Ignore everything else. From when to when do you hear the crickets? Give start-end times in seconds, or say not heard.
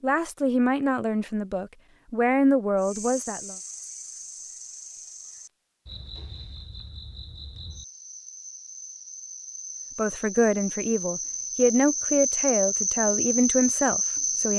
2.8-14.5.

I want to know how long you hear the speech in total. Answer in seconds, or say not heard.
8 s.